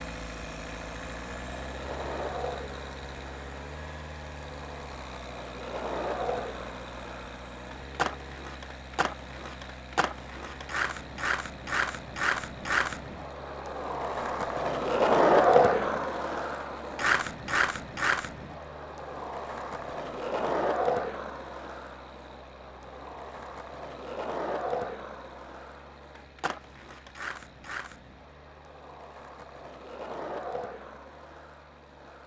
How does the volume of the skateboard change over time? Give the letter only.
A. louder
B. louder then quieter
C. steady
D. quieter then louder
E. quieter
B.